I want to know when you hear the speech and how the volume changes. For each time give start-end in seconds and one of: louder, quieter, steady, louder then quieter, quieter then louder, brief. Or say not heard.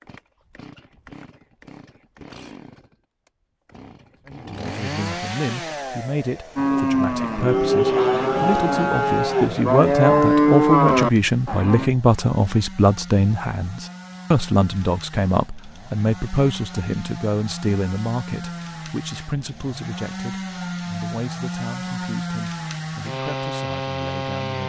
4.2-24.6 louder then quieter.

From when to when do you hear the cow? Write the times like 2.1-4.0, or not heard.
6.5-11.9.